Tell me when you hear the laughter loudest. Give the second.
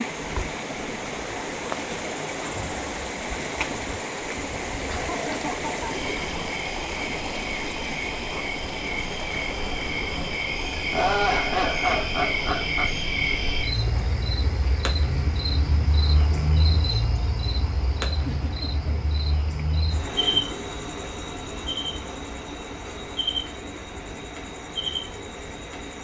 11 s.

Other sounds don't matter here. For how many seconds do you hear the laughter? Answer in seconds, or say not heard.
4 s.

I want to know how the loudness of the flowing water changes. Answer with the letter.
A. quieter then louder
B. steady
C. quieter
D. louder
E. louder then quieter
C.